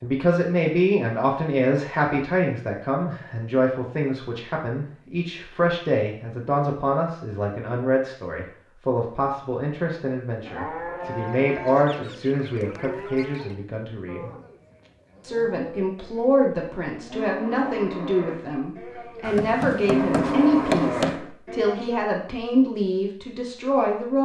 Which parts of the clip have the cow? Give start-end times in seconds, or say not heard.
10.4-22.1.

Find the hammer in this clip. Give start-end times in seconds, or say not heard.
19.2-21.2.